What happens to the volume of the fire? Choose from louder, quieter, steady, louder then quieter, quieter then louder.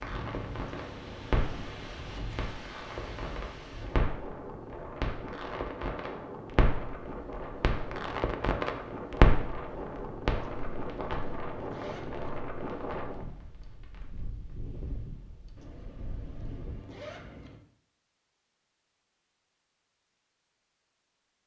louder then quieter.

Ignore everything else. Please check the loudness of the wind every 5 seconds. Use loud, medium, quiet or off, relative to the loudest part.
loud, loud, loud, medium, off.